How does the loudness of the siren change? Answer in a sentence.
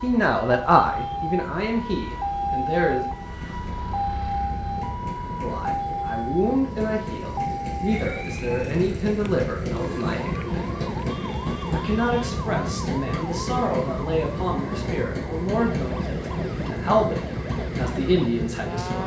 The loudness of the siren goes down.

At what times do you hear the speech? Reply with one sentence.
You can hear the speech from 0.0 to 3.0 s, from 5.4 to 10.7 s and from 11.7 to 19.0 s.